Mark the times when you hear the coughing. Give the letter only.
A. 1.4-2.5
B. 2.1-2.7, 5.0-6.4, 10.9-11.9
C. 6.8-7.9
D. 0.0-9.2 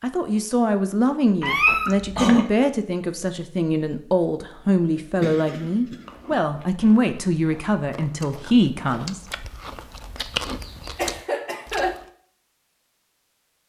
B.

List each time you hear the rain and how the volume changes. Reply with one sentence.
You can't hear the rain here.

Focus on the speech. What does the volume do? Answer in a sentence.
The loudness of the speech stays about the same.